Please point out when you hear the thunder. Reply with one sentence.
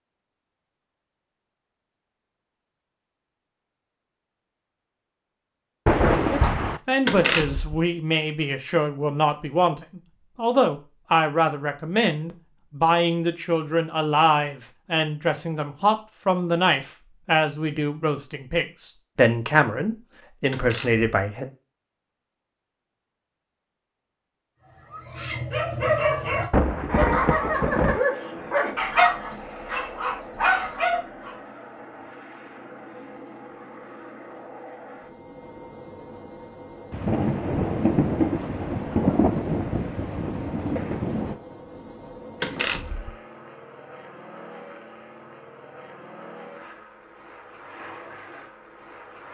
The thunder can be heard from 5.8 to 6.8 s, from 26.5 to 28.0 s and from 36.9 to 41.4 s.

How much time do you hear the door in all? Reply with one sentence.
You can hear the door for 2 seconds altogether.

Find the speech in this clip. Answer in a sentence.
You can hear the speech from 6.3 to 21.5 s.